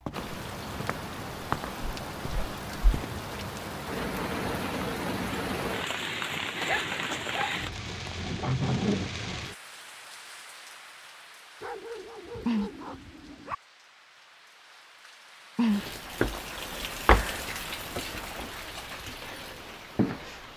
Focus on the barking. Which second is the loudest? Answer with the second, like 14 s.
7 s.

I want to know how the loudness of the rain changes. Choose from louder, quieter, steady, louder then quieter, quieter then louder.
steady.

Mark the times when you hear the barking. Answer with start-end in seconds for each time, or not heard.
6.7-8.2, 11.6-13.6.